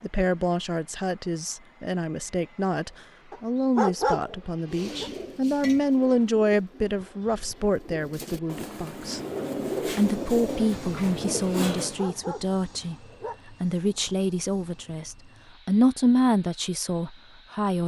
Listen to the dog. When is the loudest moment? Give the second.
4 s.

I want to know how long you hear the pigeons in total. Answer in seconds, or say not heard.
7 s.